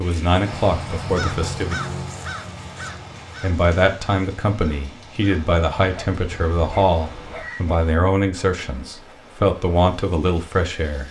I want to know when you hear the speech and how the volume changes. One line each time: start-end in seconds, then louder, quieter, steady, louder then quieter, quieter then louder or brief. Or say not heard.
0.0-1.8 brief
3.4-11.0 steady.